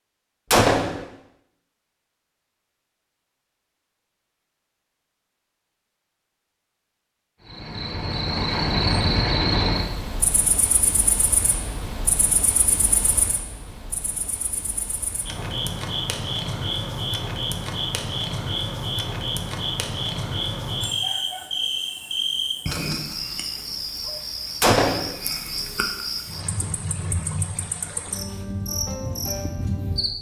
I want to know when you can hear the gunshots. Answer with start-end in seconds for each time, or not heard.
0.5-1.1, 24.6-25.1.